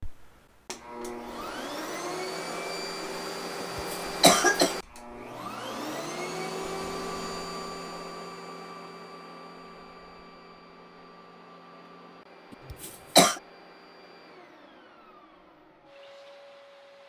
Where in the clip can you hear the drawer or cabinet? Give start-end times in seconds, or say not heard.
not heard.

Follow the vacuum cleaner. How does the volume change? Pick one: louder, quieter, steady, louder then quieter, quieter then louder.
quieter.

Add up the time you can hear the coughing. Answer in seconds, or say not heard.
2 s.